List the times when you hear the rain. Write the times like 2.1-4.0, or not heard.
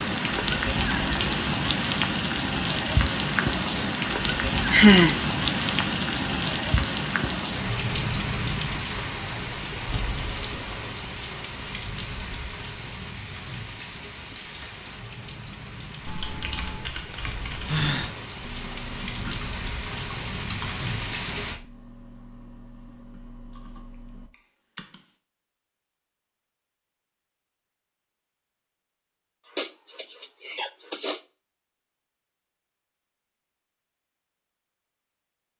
0.0-21.6.